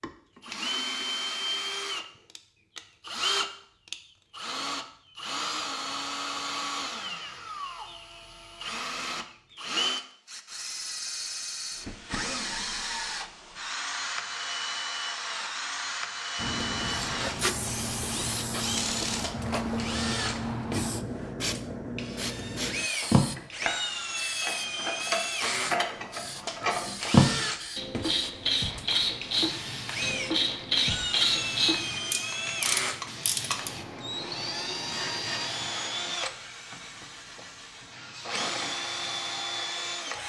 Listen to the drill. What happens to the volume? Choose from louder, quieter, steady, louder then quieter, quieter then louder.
steady.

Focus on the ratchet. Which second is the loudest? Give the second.
27 s.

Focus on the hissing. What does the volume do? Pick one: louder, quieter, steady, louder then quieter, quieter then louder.
quieter.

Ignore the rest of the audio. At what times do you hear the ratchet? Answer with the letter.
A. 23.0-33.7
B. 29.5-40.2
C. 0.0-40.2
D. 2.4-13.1
A.